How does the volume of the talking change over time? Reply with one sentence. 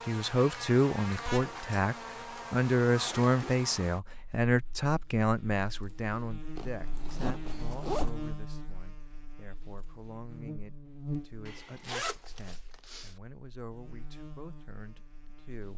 The loudness of the talking goes down.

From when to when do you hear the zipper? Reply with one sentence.
The zipper can be heard from 3.0 to 3.6 s, from 6.5 to 8.2 s and from 11.4 to 13.1 s.